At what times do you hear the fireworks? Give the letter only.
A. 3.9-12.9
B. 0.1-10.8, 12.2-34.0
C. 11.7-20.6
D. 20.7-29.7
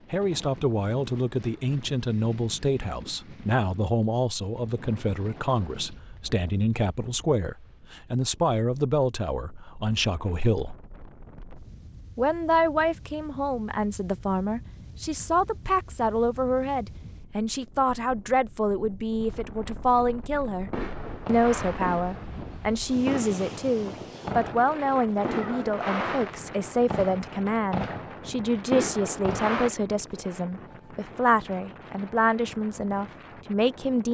D.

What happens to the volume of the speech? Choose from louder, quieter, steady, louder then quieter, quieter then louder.
steady.